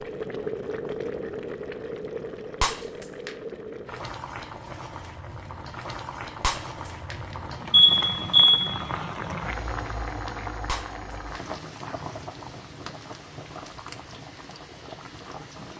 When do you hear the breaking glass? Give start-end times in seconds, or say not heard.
2.6-3.4, 6.4-7.3, 10.7-11.6.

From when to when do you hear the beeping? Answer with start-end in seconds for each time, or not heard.
7.7-8.6.